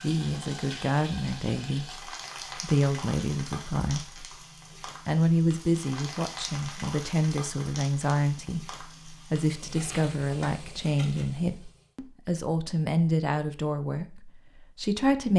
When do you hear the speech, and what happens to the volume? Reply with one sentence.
You can hear the speech from 0.0 to 15.3 s, at a steady volume.